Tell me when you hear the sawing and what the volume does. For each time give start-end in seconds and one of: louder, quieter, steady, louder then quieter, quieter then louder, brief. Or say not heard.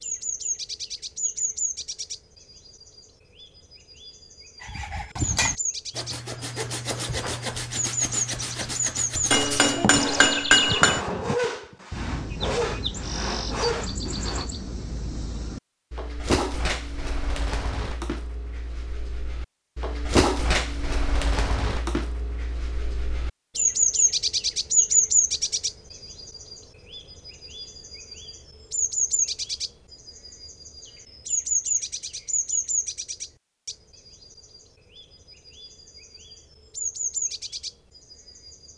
4.6-14.5 steady.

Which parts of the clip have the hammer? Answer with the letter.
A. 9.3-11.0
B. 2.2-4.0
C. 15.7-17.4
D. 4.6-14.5
A.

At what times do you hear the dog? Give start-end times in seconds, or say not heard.
not heard.